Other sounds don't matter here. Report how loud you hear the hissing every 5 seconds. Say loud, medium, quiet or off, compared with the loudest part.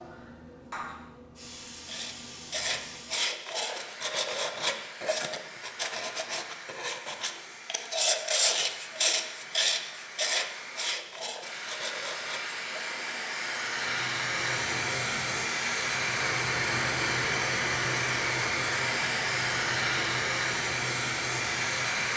quiet, quiet, medium, loud, loud.